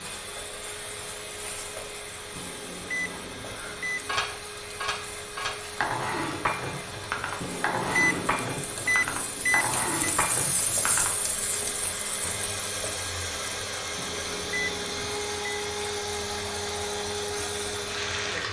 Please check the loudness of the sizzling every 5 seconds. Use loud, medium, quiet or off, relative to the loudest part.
medium, medium, loud, loud.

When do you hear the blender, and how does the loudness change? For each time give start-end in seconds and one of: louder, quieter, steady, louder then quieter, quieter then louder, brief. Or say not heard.
0.0-18.4 louder.